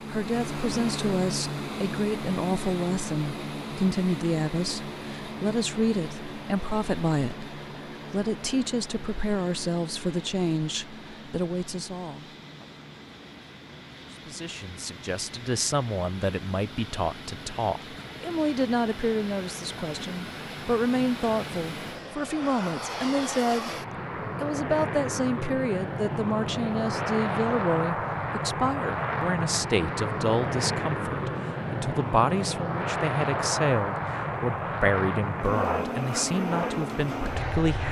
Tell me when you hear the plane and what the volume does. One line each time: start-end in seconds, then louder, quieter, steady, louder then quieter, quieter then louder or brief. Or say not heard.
0.0-37.8 quieter then louder.